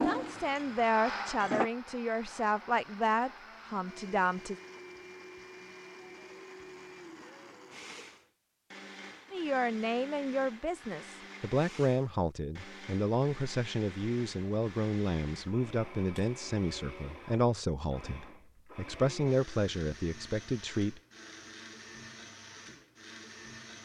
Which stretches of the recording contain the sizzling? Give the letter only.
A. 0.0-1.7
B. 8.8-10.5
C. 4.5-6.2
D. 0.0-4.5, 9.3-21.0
A.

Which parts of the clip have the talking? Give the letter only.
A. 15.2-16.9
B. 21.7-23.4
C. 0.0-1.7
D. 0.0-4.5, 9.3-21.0
D.